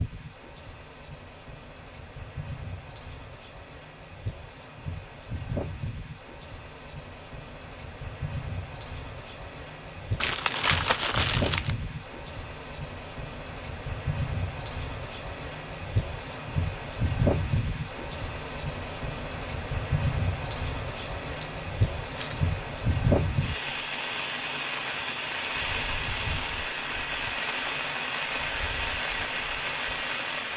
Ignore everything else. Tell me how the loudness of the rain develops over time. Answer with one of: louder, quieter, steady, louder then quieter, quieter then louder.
louder.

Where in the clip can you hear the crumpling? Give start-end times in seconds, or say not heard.
10.2-11.8, 21.0-22.6.